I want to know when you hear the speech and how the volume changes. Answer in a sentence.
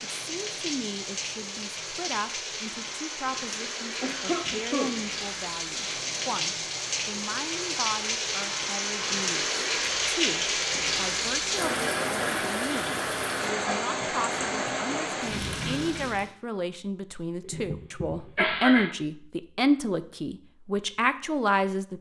The speech can be heard from 0.1 to 21.9 s, getting louder.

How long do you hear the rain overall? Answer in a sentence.
The rain can be heard for 16 seconds in total.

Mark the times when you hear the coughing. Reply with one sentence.
You can hear the coughing from 4.0 to 5.0 s and from 17.5 to 18.9 s.